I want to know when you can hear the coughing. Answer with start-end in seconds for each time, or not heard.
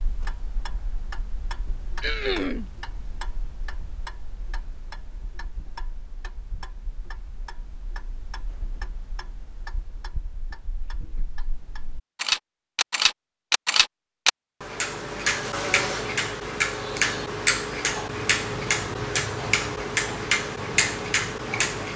2.0-2.7.